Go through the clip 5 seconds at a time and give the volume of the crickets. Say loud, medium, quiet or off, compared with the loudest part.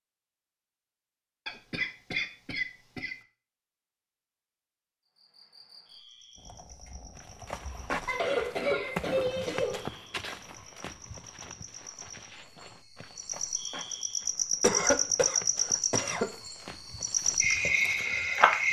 off, quiet, medium, loud.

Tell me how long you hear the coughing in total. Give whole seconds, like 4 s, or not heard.
5 s.